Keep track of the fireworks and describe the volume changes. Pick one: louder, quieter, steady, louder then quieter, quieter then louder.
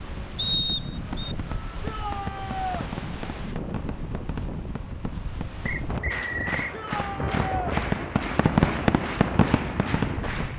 louder.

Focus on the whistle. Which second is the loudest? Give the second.
1 s.